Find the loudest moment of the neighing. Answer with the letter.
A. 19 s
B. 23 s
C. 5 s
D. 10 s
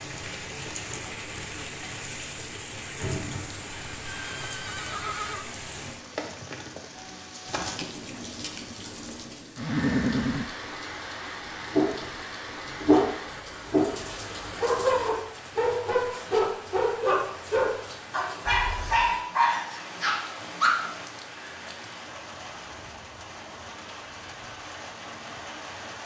D.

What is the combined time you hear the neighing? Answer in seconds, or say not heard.
3 s.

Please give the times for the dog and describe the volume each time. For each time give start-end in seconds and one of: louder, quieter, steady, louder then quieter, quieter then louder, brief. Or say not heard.
11.7-20.7 steady.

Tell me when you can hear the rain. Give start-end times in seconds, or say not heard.
0.0-26.0.